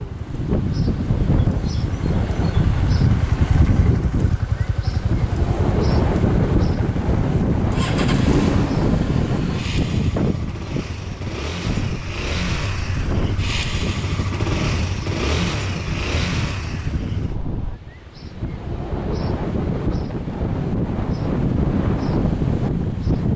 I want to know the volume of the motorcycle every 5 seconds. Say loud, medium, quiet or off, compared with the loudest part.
loud, loud, loud, loud, off.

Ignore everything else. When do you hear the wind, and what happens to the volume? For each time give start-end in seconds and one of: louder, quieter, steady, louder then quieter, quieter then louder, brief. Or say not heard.
0.0-23.3 quieter then louder.